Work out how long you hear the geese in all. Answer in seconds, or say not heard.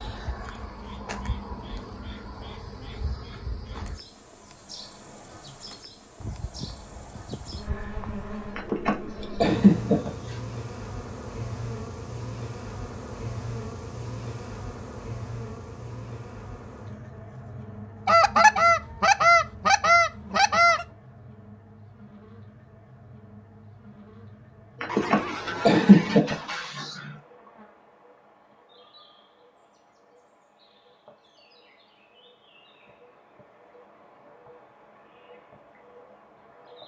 7 s.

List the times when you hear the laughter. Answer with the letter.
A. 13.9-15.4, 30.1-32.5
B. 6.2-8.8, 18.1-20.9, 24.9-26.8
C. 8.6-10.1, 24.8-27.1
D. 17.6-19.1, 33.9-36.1
C.